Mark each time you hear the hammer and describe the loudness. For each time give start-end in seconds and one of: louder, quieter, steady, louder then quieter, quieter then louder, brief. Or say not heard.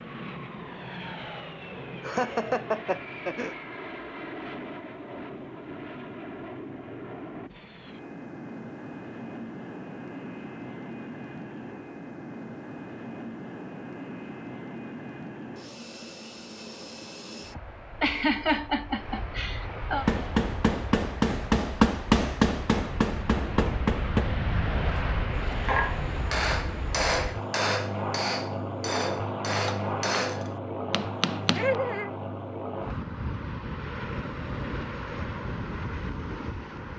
20.1-31.8 quieter.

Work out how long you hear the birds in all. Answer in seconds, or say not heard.
not heard.